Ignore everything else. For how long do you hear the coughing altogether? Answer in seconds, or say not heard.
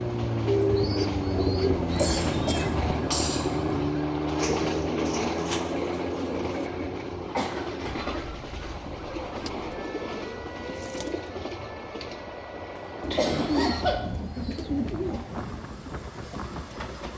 5 s.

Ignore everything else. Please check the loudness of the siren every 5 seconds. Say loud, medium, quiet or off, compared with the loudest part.
loud, medium, quiet, quiet.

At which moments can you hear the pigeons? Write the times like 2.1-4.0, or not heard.
0.5-2.8, 4.3-6.7, 9.1-11.3, 13.0-15.3.